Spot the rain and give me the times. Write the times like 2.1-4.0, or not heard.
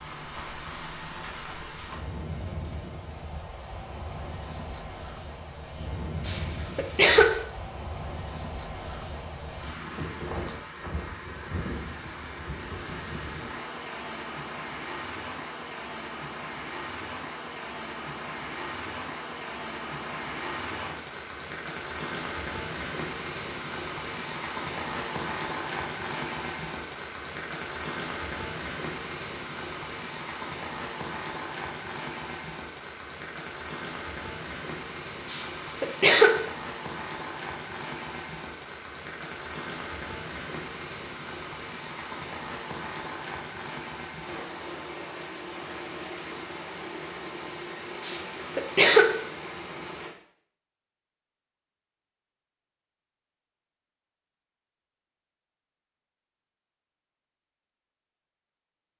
0.0-50.1.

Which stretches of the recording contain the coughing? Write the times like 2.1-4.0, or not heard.
6.2-7.4, 35.2-36.5, 48.0-49.2.